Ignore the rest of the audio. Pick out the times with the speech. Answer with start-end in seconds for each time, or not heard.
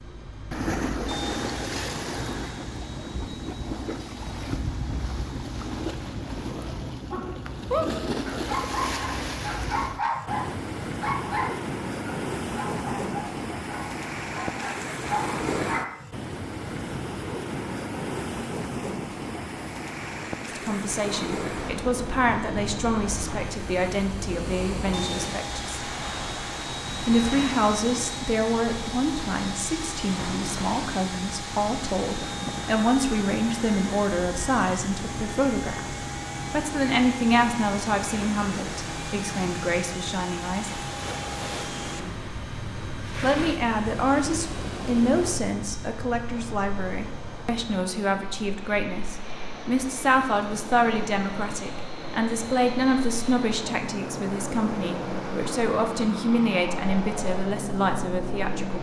20.4-25.9, 26.9-40.7, 43.2-58.7.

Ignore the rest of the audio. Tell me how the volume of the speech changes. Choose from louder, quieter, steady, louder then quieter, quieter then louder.
steady.